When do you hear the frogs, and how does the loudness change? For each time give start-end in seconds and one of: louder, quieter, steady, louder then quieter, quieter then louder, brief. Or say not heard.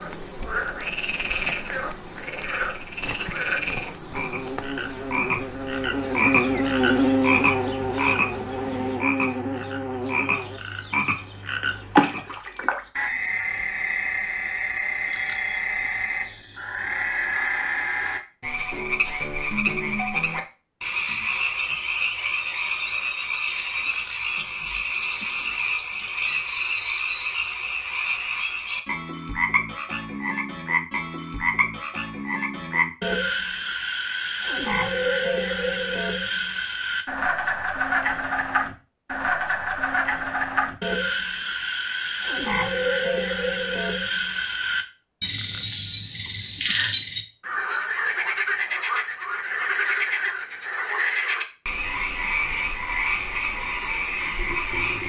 0.0-55.0 steady.